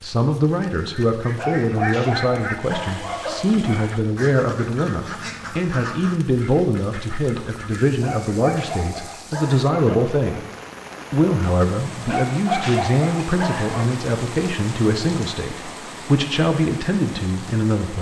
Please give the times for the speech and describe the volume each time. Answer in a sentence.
You can hear the speech from 0.0 to 10.4 s, at a steady volume; and from 11.1 to 17.9 s, at a steady volume.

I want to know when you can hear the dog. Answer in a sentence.
You can hear the dog from 1.4 to 3.9 s, from 8.0 to 10.2 s and from 12.1 to 13.8 s.